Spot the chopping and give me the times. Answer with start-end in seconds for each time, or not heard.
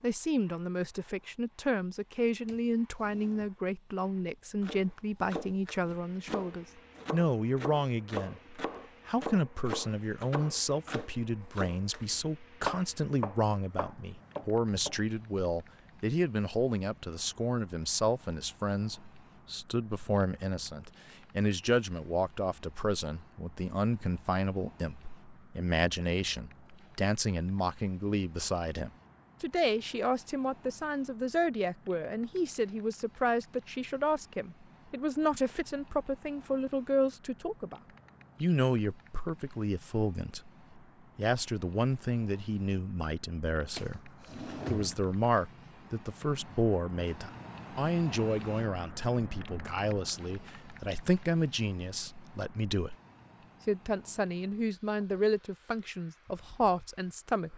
4.6-14.9.